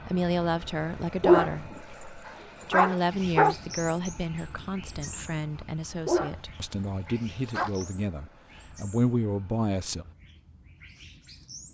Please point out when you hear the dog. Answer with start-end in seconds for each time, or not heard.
1.2-3.5, 6.0-7.7.